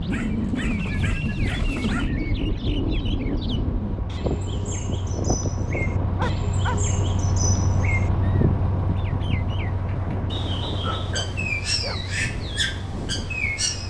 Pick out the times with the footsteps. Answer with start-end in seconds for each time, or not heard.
not heard.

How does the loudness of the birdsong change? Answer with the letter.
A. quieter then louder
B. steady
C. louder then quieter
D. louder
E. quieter
D.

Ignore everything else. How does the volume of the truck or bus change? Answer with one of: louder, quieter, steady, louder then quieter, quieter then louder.
louder then quieter.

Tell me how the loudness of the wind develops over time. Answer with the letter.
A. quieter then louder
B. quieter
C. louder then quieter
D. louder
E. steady
B.